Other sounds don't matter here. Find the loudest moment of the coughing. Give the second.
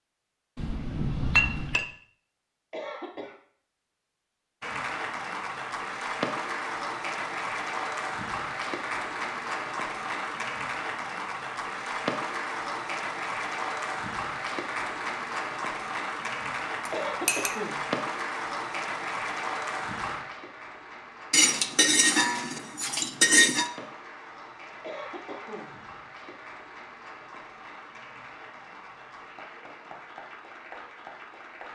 17 s.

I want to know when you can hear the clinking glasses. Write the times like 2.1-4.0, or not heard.
0.6-1.9, 16.9-17.6, 21.3-23.7.